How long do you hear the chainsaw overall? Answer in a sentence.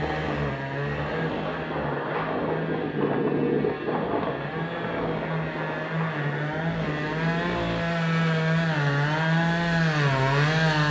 The chainsaw can be heard for 11 seconds in total.